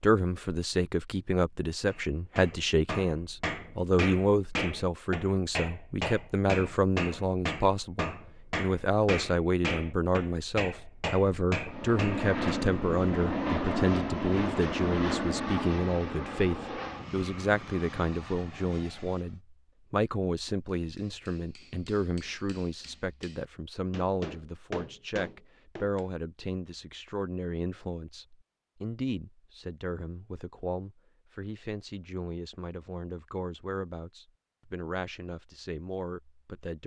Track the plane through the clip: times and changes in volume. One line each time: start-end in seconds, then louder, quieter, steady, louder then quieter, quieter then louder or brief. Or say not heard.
11.7-19.4 quieter.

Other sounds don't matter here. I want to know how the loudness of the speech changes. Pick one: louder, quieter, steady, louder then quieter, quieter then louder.
quieter.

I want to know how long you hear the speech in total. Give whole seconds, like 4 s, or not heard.
37 s.